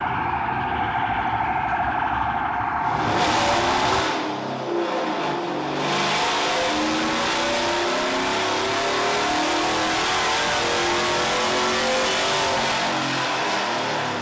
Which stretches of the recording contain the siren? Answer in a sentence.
The siren can be heard from 0.0 to 4.0 s.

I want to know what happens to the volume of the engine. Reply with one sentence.
The volume of the engine stays about the same.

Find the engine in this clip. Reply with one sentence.
The engine can be heard from 2.8 to 14.1 s.